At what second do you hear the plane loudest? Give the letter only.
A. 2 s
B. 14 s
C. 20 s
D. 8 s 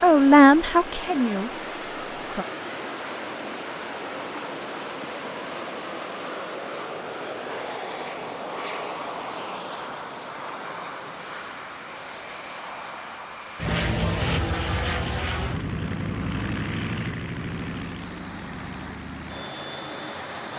B.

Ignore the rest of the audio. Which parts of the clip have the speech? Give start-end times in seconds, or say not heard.
0.0-2.5.